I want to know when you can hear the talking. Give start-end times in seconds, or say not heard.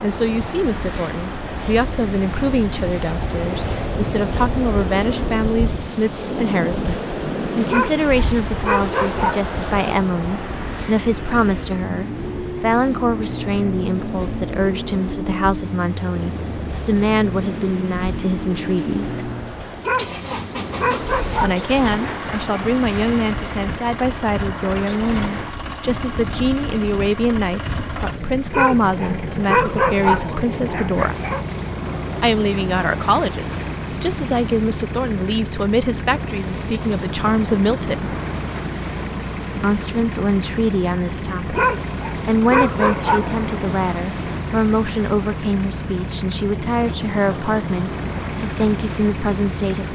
0.0-19.3, 21.4-31.3, 32.2-38.1, 39.6-41.6, 42.2-49.9.